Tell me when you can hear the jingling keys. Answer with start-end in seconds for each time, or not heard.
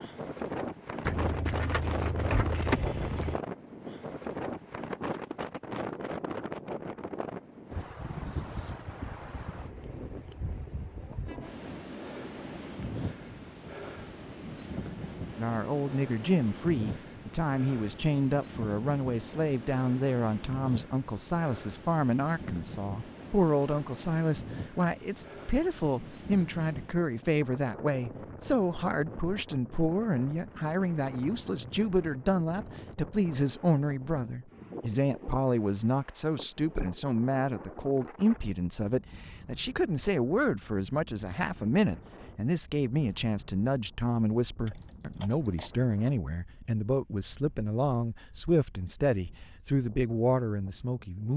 1.1-3.4, 44.6-45.8.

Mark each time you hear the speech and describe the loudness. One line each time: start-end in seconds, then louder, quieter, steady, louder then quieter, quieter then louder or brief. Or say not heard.
15.3-51.3 steady.